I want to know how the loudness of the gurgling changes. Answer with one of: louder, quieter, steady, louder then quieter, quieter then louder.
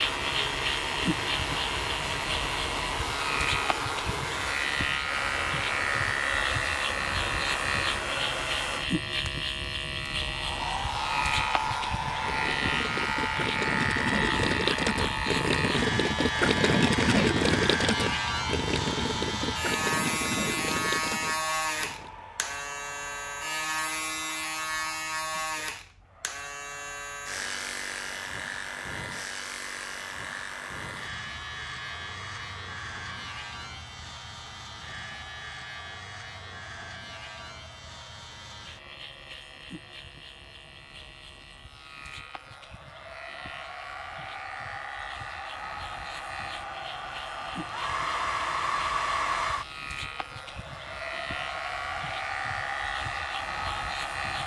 louder then quieter.